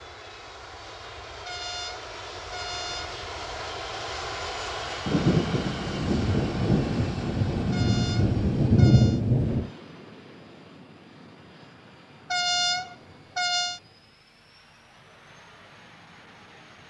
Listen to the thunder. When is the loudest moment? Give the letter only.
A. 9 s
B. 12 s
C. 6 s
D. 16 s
A.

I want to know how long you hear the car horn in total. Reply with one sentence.
You can hear the car horn for 5 seconds altogether.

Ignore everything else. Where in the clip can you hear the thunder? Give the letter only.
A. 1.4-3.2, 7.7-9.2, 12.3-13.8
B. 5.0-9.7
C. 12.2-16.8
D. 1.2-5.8
B.